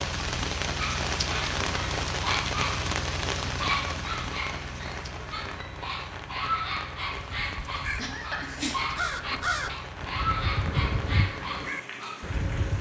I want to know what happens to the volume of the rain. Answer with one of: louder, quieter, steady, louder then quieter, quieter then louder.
quieter.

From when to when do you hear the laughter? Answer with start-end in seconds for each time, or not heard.
8.0-8.5.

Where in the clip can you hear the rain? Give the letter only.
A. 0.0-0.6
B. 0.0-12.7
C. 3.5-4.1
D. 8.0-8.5
B.